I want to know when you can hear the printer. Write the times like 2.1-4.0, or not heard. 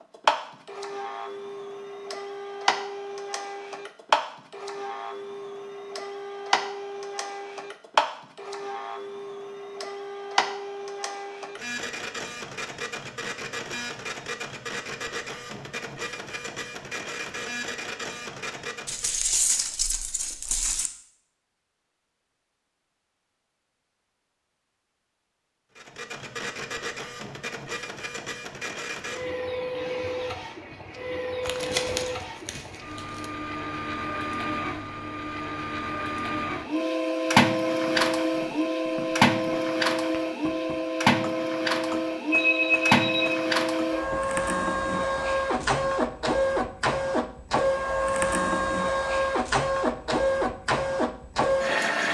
0.0-19.2, 25.8-52.0.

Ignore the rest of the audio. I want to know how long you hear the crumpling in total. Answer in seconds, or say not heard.
4 s.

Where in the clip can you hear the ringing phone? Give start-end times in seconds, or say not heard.
42.3-43.5.